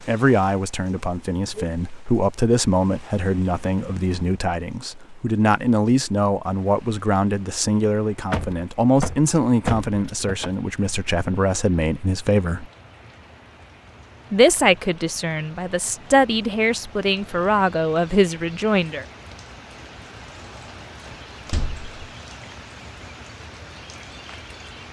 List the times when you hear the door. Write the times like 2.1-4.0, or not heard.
8.3-10.5, 21.1-21.9.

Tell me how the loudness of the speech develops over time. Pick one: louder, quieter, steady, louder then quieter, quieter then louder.
steady.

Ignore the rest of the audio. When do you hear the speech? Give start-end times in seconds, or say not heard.
0.0-12.7, 14.3-19.1.